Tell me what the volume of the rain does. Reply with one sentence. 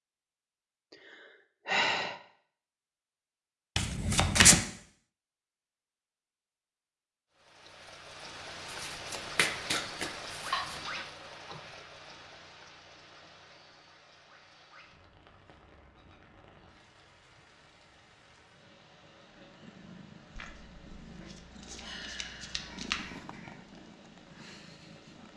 The volume of the rain goes down.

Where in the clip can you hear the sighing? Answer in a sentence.
The sighing can be heard from 0.9 to 2.2 s, from 10.5 to 11.8 s and from 21.2 to 23.8 s.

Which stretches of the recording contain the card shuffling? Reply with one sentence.
The card shuffling can be heard from 3.8 to 4.7 s, from 8.7 to 10.8 s and from 20.4 to 23.0 s.